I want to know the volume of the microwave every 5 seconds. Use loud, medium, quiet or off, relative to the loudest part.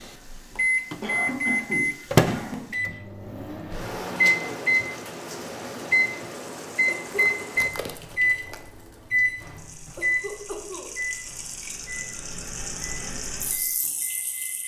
loud, loud, medium.